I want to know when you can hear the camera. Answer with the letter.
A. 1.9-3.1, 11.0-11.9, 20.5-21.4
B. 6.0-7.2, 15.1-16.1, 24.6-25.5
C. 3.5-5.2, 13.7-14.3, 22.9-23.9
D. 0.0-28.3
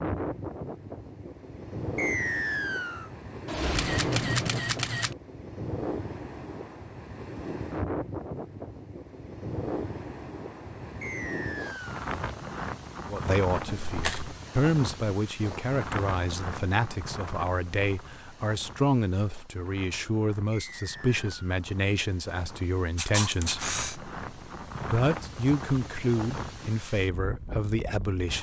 C.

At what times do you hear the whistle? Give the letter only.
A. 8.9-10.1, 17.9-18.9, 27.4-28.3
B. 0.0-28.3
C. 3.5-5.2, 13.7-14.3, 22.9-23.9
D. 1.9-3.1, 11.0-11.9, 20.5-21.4
D.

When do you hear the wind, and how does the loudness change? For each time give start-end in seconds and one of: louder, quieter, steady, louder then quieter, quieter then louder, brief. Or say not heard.
0.0-28.3 quieter then louder.